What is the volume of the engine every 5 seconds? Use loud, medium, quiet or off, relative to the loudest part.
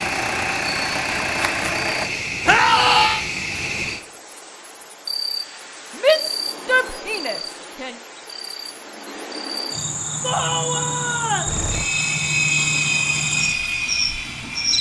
loud, off, loud.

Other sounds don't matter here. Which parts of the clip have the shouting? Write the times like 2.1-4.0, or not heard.
2.5-3.2, 6.0-8.0, 10.2-11.6.